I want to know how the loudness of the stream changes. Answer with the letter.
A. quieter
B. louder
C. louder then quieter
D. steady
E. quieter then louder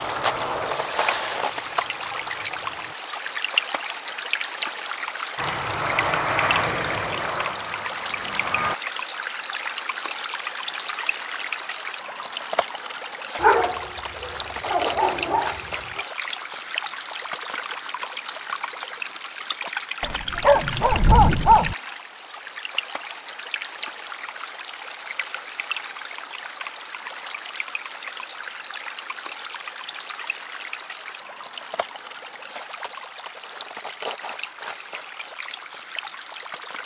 A.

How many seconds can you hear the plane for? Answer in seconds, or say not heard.
6 s.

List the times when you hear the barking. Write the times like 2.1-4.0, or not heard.
13.4-16.1, 20.0-21.8.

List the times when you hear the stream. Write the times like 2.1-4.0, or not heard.
0.0-36.8.